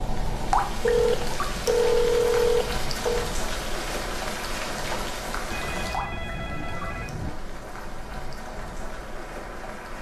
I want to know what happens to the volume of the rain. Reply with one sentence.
The loudness of the rain goes down.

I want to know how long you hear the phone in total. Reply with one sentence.
The phone can be heard for 4 seconds in total.